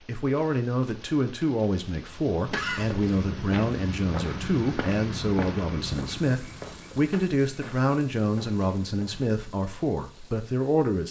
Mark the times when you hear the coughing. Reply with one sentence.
The coughing can be heard from 2.5 to 3.2 s.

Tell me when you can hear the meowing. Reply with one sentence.
You can't hear the meowing here.